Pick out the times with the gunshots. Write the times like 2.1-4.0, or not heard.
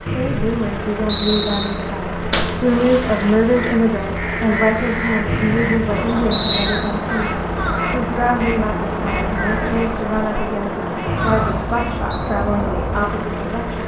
2.3-3.5.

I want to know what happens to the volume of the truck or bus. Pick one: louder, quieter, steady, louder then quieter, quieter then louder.
steady.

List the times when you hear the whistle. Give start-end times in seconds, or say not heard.
0.1-1.6, 5.2-6.8, 11.1-12.0.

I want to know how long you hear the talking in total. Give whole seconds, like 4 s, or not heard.
14 s.